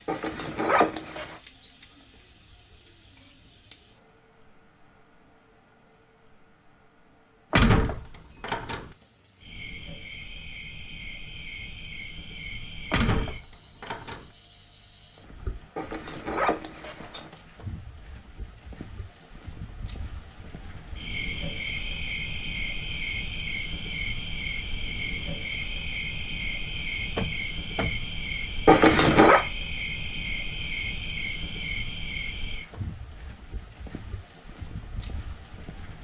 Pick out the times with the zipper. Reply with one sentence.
The zipper can be heard from 0.1 to 1.4 s, from 15.8 to 17.3 s and from 28.6 to 29.4 s.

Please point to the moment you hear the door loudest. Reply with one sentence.
The volume of the door peaks at 8 seconds.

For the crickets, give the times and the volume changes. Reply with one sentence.
The crickets can be heard from 0.0 to 35.9 s, getting louder.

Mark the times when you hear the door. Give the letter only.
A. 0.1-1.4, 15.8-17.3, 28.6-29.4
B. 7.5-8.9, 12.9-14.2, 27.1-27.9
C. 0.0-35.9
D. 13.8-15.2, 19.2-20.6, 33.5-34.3
B.